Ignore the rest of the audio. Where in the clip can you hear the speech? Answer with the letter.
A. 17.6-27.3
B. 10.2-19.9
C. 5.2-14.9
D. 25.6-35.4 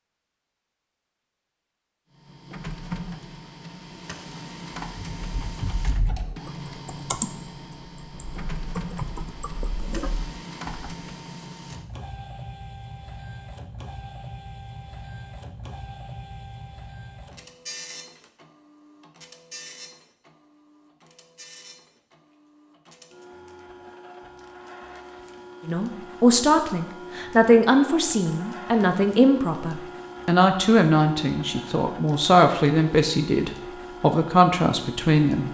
D.